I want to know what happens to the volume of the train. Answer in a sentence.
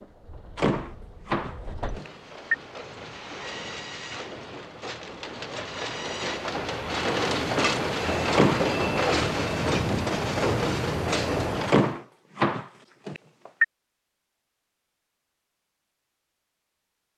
The loudness of the train goes up.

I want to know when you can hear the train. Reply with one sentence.
The train can be heard from 0.0 to 12.0 s.